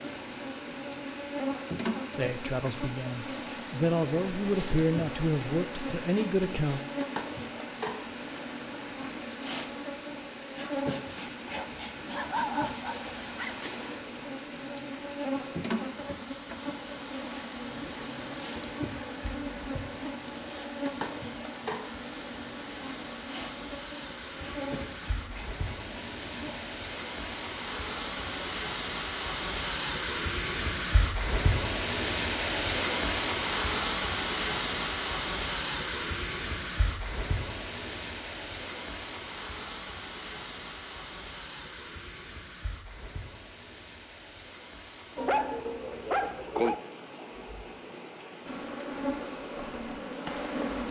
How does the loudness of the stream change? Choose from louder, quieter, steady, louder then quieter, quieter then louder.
louder then quieter.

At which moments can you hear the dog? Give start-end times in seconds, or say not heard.
11.4-13.6, 45.1-46.8.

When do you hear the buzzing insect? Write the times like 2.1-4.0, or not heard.
0.0-28.6, 48.5-50.8.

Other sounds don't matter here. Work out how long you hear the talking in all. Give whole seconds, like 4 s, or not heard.
5 s.